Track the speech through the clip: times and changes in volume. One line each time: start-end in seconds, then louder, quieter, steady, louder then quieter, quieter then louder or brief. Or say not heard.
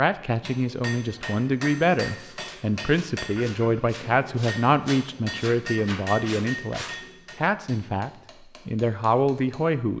0.0-9.9 steady.